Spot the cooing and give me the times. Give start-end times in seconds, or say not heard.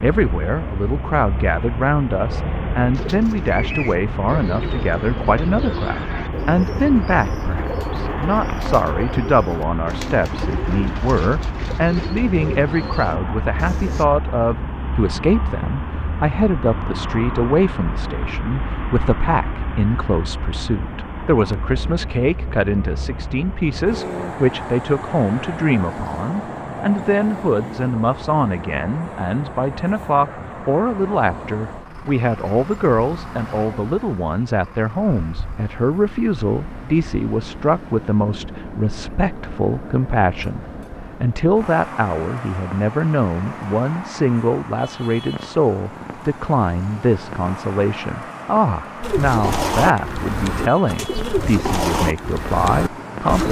2.9-14.1, 49.0-53.4.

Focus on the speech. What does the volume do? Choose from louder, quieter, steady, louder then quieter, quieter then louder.
steady.